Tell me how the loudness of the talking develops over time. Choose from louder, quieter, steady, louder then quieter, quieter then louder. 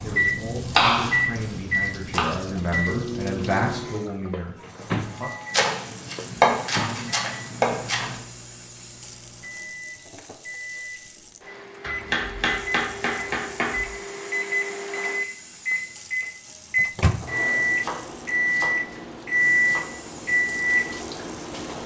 louder then quieter.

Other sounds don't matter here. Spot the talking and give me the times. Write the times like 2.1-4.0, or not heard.
0.0-5.5.